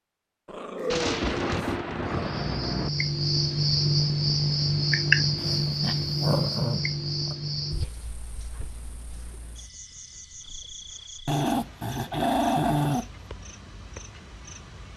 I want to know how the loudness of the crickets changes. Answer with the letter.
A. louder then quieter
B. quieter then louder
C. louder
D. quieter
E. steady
D.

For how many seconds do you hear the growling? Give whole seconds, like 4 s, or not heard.
6 s.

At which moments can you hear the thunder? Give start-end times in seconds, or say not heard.
0.9-2.9.